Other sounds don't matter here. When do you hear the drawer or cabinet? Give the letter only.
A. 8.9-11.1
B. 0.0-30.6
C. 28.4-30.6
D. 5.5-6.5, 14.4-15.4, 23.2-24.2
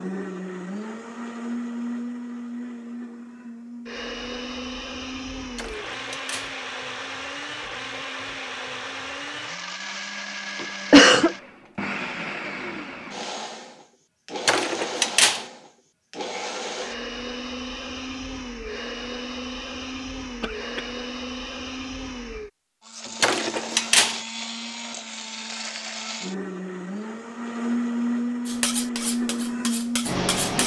D.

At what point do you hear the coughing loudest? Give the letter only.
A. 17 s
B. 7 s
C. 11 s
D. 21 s
C.